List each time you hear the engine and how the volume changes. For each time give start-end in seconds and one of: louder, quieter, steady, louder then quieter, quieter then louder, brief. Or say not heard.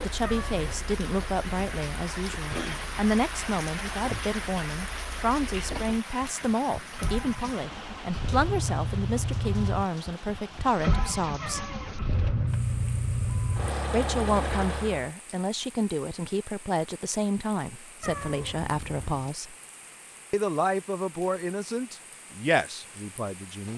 0.0-15.1 louder.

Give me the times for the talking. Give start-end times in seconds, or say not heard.
0.0-11.7, 13.9-19.6, 20.3-23.7.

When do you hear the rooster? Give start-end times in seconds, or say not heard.
not heard.